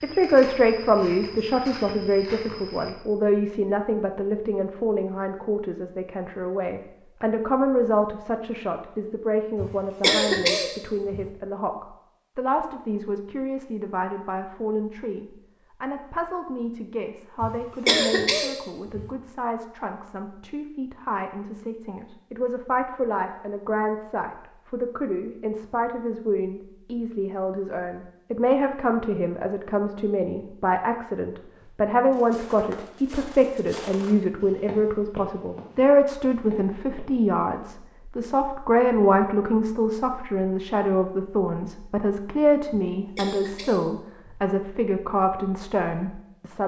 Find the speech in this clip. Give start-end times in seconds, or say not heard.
0.0-46.6.